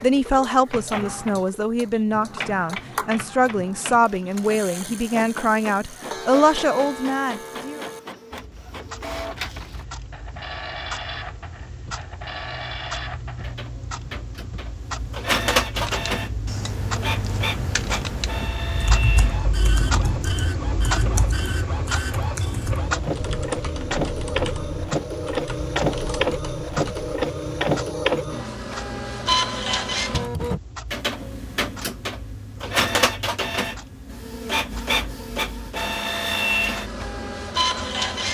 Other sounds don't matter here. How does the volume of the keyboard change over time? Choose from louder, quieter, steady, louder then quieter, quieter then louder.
quieter.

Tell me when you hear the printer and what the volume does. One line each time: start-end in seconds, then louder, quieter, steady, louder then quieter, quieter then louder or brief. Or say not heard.
0.0-38.2 louder.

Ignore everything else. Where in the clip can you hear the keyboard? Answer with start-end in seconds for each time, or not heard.
15.7-27.2.